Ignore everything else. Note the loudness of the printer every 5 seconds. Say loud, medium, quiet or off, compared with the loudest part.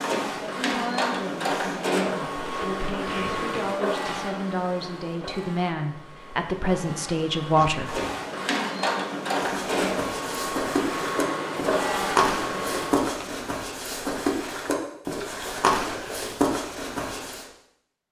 loud, loud, loud, off.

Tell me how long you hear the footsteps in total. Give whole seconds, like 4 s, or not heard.
8 s.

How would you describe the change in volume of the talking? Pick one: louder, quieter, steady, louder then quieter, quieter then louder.
louder.